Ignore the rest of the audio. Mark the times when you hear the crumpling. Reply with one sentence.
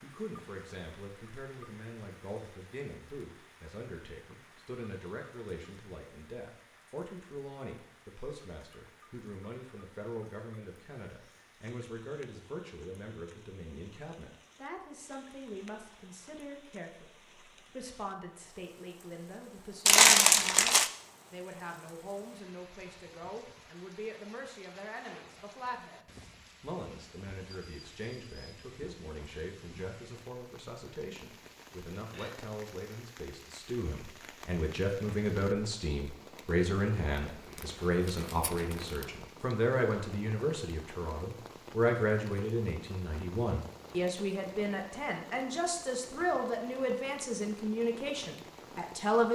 The crumpling can be heard from 19.9 to 20.9 s and from 37.3 to 39.0 s.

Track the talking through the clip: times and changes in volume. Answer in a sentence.
The talking can be heard from 0.0 to 49.3 s, getting louder.